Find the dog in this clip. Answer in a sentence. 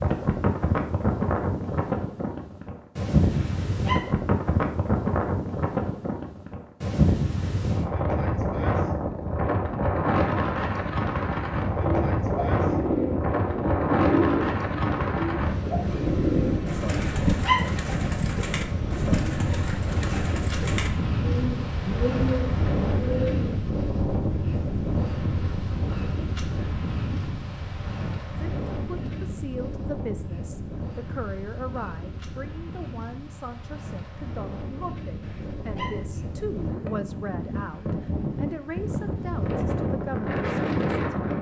You can hear the dog from 3.3 to 4.1 s, from 16.9 to 17.7 s and from 35.2 to 36.0 s.